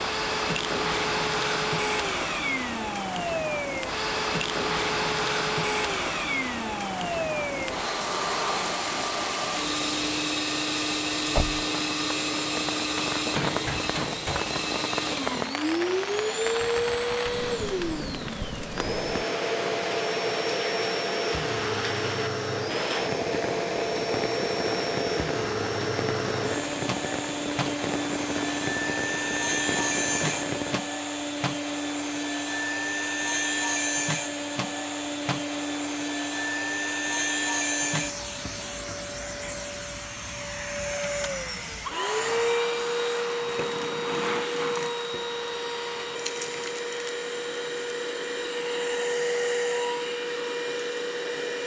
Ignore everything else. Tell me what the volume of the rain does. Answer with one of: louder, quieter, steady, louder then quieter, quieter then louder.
steady.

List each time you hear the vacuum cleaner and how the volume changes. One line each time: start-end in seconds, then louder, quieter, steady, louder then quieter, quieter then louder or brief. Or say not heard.
0.0-51.6 steady.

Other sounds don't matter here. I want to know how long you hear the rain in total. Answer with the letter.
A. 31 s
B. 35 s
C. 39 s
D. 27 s
A.